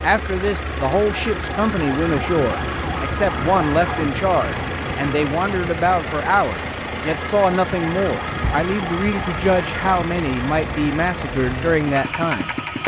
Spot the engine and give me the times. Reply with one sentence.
You can hear the engine from 0.0 to 12.8 s.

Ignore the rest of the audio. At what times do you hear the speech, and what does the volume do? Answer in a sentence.
You can hear the speech from 0.0 to 12.8 s, at a steady volume.